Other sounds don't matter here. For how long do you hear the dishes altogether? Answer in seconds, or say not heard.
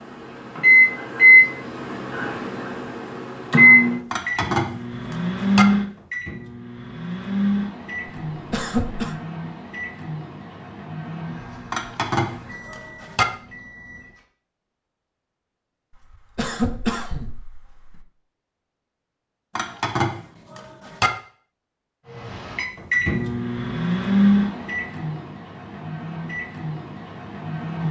5 s.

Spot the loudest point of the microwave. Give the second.
1 s.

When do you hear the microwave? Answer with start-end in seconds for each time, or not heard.
0.0-14.2, 22.1-27.8.